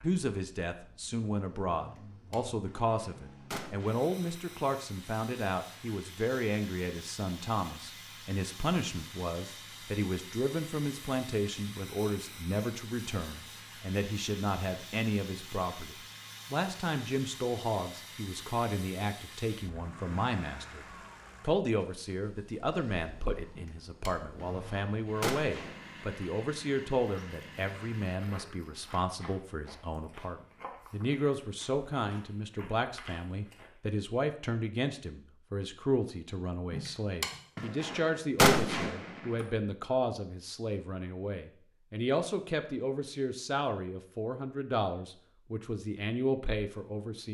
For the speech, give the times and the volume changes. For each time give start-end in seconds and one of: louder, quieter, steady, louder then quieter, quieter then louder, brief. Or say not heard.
0.0-47.2 steady.